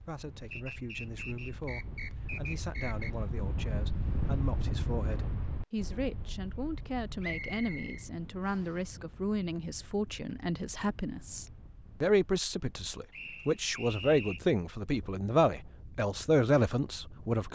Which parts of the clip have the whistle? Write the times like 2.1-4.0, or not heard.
0.5-3.1, 7.2-8.8, 13.1-14.4.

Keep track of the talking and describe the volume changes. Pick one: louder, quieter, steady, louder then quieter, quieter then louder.
louder.